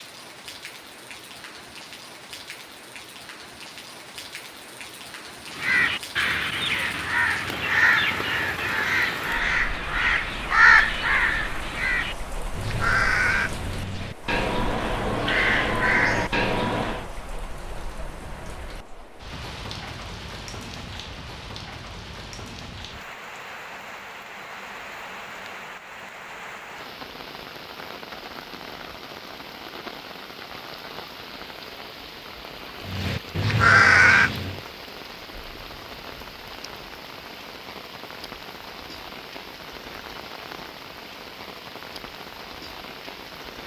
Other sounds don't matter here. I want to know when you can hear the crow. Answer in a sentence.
The crow can be heard from 5.5 to 17.1 s and from 32.9 to 34.6 s.